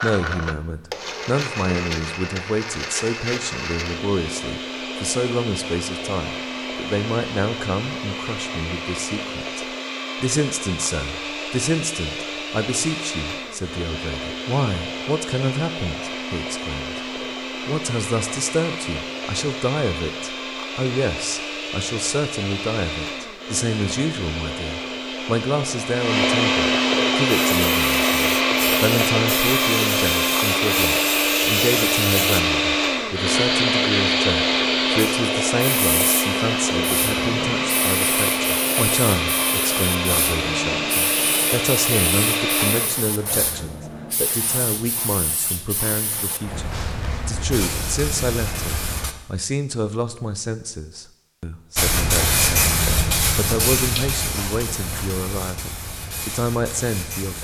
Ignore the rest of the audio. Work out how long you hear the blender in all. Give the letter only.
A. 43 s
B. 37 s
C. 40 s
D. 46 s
A.